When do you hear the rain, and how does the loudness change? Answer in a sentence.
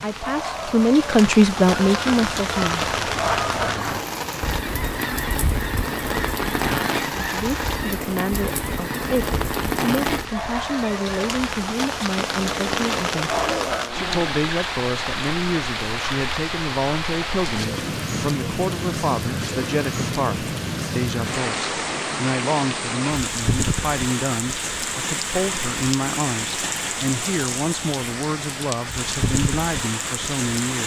The rain can be heard from 0.0 to 30.8 s, at a steady volume.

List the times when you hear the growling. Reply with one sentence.
You can hear the growling from 12.3 to 14.4 s.